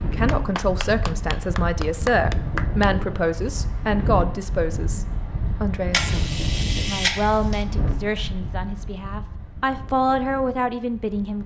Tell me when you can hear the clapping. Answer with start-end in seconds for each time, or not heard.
0.2-2.9.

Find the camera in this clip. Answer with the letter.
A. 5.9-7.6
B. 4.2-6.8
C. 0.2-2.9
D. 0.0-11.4
A.